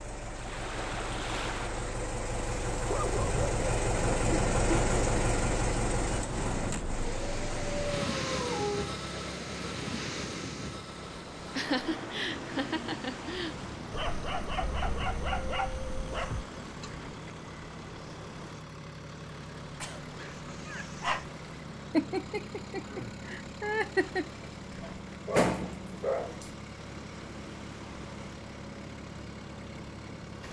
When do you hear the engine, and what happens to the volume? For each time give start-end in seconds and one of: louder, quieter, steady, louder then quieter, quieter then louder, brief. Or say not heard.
0.0-30.4 quieter.